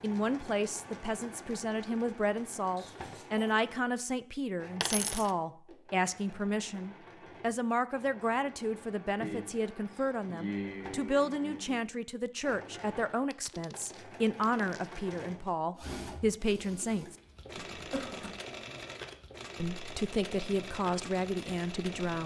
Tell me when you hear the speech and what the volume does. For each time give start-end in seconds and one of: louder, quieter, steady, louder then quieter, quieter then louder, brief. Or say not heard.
0.0-17.1 steady
19.6-22.2 brief.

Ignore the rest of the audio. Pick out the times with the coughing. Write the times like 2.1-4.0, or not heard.
2.8-3.5, 9.2-11.8, 17.6-18.4.